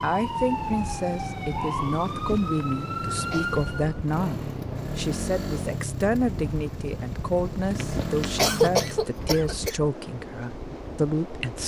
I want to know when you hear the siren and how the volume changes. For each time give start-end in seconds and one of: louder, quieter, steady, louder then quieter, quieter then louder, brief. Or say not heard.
0.0-4.0 steady.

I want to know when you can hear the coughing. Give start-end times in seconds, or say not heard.
2.7-3.6, 7.8-9.8.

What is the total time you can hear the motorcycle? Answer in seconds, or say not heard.
5 s.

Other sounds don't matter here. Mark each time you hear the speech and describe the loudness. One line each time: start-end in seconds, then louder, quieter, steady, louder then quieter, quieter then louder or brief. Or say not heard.
0.0-11.6 steady.